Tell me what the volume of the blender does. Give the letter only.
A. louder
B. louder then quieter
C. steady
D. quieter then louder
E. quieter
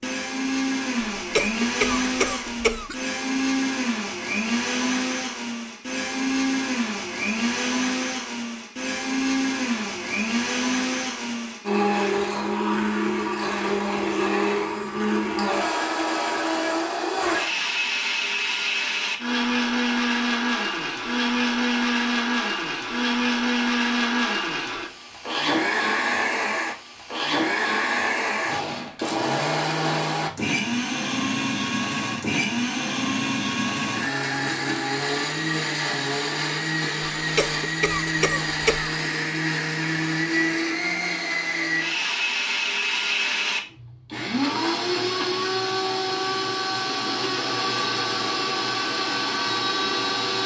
C.